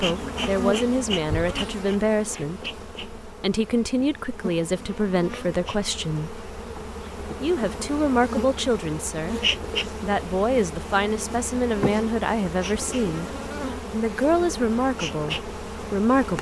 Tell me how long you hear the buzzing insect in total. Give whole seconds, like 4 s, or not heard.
16 s.